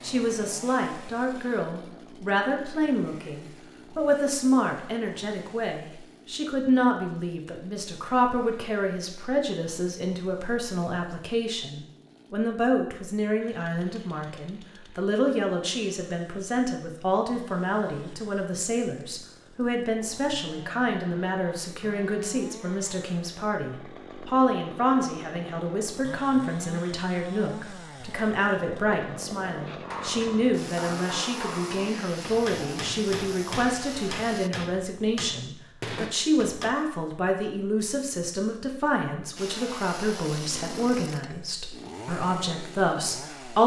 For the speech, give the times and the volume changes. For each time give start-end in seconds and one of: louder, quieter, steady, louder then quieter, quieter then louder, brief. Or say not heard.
0.0-43.6 steady.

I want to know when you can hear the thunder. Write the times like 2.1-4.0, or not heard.
not heard.